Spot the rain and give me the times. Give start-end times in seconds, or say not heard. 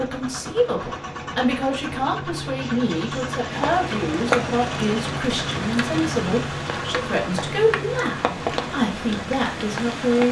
3.5-10.2.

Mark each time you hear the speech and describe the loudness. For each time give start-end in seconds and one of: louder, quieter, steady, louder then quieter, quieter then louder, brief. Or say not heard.
0.0-10.2 steady.